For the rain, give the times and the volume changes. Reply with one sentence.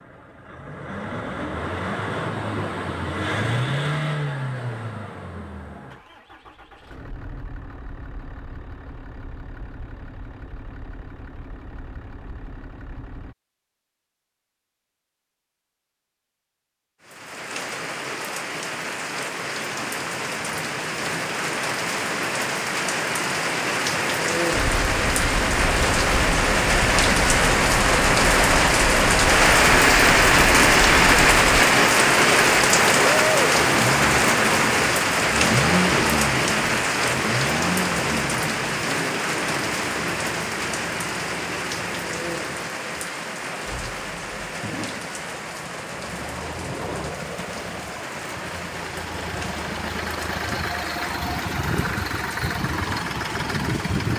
The rain can be heard from 17.0 to 54.1 s, getting louder then quieter.